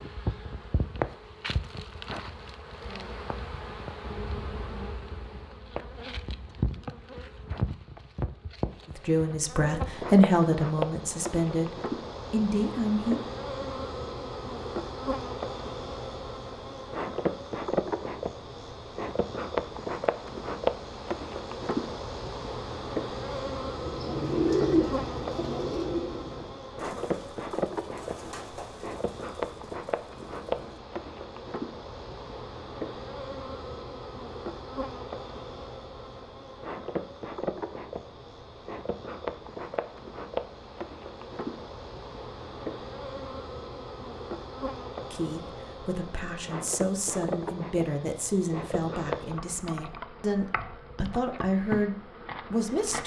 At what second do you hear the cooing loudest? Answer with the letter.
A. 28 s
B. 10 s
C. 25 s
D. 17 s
C.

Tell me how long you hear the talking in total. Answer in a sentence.
The talking can be heard for 12 seconds in total.